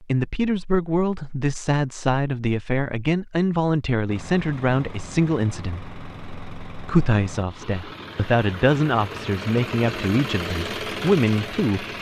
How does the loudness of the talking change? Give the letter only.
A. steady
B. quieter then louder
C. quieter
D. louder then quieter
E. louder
A.